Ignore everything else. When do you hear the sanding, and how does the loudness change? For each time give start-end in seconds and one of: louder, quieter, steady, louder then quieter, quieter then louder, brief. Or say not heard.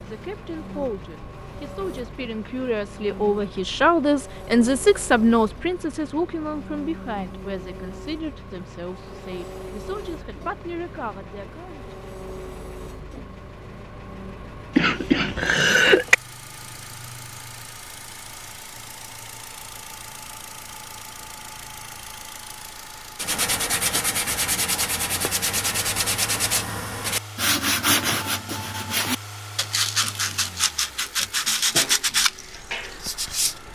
23.1-33.6 steady.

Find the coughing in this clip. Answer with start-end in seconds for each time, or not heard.
14.8-16.1.